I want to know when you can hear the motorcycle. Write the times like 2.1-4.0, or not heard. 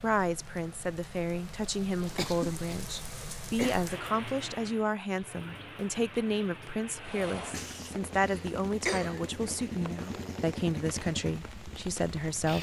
7.0-12.5.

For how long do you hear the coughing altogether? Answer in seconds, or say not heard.
3 s.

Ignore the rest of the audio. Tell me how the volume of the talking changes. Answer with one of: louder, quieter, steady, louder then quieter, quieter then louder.
steady.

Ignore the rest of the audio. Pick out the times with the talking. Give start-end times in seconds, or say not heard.
0.0-12.5.